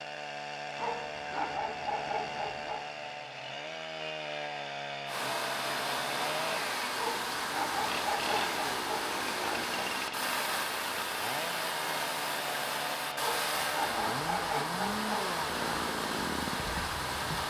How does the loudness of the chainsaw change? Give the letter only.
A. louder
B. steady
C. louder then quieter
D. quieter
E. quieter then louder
B.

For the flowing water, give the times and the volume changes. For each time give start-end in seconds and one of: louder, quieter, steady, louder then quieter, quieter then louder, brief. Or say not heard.
5.0-17.4 steady.